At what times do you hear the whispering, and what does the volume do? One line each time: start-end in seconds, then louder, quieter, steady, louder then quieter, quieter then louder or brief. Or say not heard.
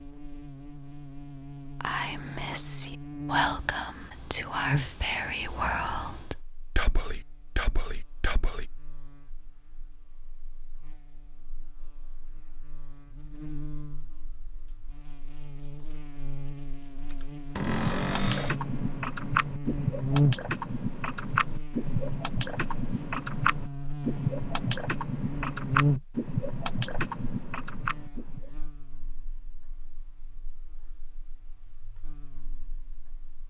1.8-8.7 quieter.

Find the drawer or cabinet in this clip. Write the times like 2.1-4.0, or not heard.
17.6-18.6.